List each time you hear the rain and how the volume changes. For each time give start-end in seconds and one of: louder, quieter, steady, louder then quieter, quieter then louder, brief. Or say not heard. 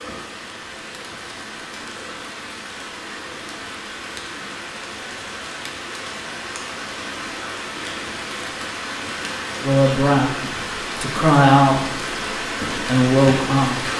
0.0-13.9 louder.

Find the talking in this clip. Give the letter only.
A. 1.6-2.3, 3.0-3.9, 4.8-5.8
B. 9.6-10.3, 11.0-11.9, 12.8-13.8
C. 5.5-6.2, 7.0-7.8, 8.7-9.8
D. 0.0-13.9
B.